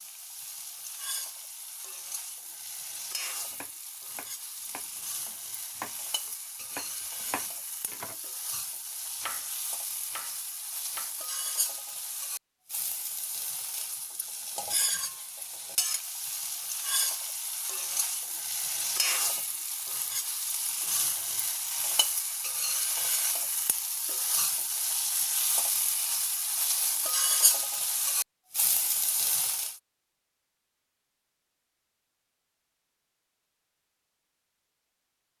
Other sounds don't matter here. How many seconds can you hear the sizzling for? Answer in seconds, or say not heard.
30 s.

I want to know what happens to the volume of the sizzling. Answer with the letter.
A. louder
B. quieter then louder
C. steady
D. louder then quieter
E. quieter
A.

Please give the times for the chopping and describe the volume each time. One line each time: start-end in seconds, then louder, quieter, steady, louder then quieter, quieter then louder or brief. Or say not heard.
3.5-8.6 louder
9.2-11.2 brief.